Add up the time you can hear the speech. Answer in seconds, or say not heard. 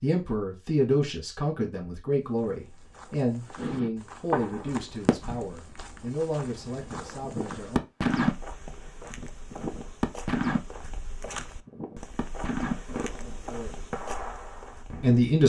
9 s.